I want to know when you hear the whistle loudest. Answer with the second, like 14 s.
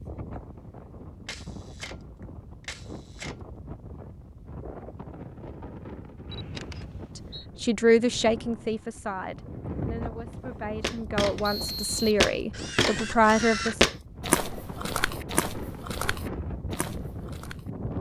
12 s.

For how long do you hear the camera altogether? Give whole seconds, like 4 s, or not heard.
3 s.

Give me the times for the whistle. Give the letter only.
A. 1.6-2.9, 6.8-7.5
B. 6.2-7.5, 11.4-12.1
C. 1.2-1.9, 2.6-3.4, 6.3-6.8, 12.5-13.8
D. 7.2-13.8
B.